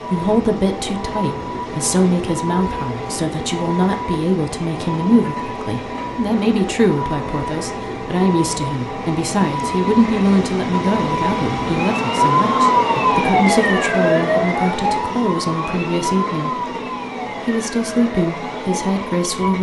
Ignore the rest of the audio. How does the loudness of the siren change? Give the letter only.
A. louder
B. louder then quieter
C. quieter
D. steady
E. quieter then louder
B.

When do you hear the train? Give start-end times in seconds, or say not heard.
0.0-19.5.